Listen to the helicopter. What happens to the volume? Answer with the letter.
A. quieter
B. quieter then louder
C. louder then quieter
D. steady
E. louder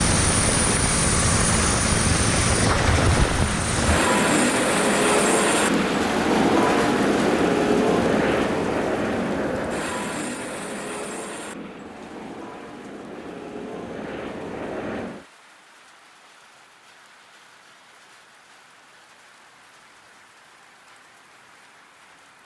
A.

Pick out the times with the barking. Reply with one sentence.
The barking can't be heard in this clip.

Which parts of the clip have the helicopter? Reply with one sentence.
The helicopter can be heard from 0.0 to 15.2 s.